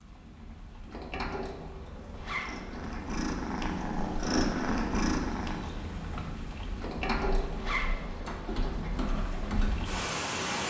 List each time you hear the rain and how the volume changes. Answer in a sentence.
The rain can be heard from 0.0 to 10.6 s, getting louder.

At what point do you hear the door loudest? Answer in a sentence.
The loudest moment of the door is at 7 seconds.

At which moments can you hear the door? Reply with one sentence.
The door can be heard from 0.8 to 3.0 s and from 6.8 to 9.0 s.